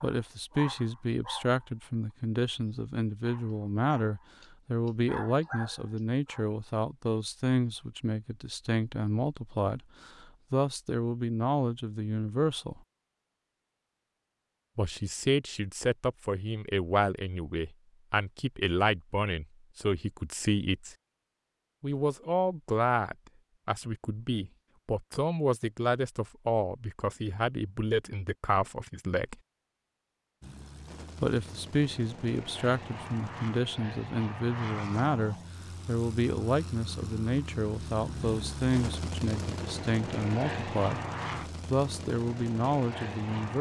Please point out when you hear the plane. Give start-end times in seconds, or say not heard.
30.4-43.5.